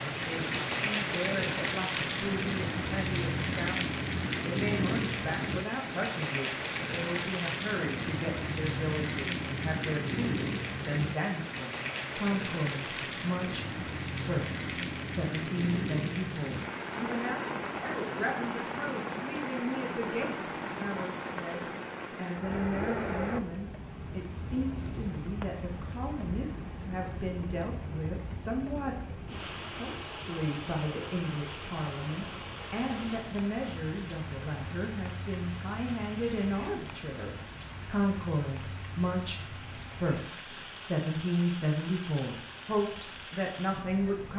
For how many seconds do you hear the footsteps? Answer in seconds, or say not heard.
not heard.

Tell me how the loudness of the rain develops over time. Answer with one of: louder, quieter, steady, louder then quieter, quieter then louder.
quieter.